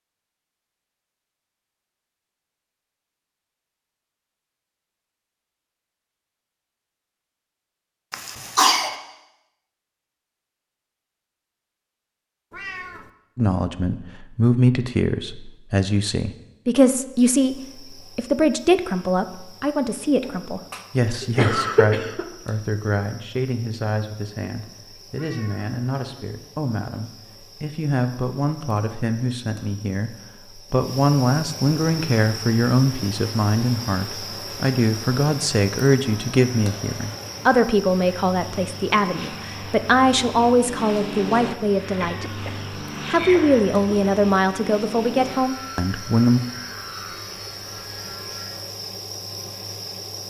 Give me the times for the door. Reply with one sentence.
The door can't be heard in this clip.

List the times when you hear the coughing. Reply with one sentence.
You can hear the coughing from 8.1 to 8.9 s, from 20.2 to 22.2 s and from 42.0 to 44.0 s.